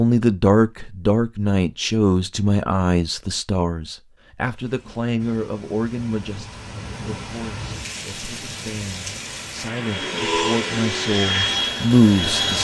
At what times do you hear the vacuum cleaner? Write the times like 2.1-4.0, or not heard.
9.8-12.6.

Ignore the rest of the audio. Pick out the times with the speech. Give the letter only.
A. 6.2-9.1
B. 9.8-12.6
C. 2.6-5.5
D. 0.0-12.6
D.